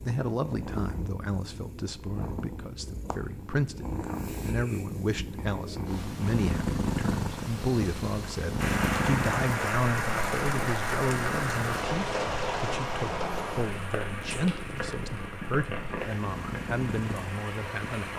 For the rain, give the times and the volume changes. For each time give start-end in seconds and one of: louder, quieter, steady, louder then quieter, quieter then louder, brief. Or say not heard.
8.6-18.1 quieter.